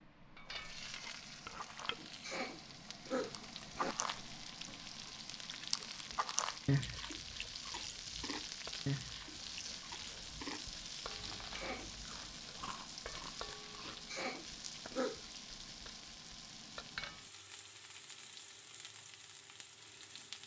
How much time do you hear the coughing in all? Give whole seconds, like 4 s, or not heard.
4 s.